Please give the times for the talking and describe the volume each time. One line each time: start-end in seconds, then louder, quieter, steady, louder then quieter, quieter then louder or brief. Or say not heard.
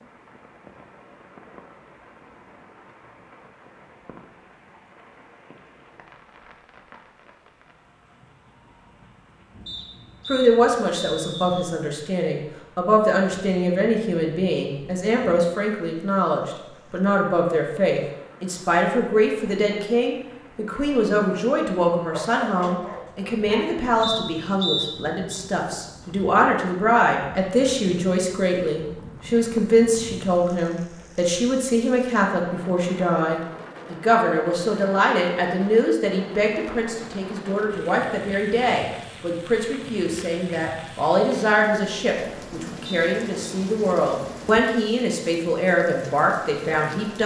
10.2-47.2 steady.